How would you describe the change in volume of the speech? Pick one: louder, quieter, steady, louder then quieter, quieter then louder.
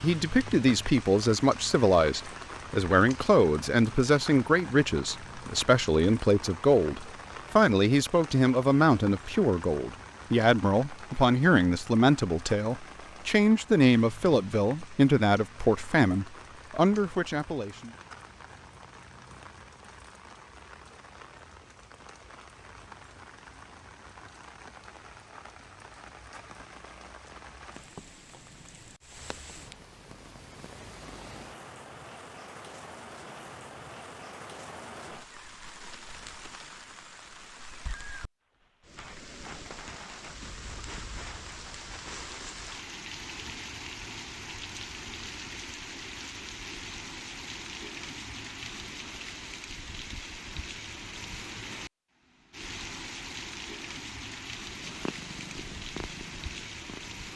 steady.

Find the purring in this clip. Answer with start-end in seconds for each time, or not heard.
54.8-57.2.